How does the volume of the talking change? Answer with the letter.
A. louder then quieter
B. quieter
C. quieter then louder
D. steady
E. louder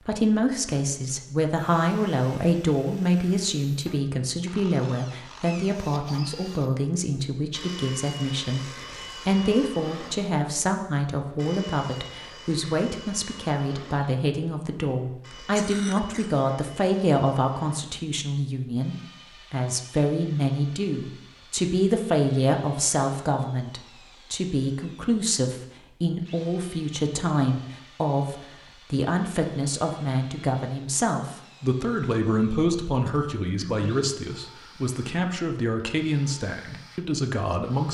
D.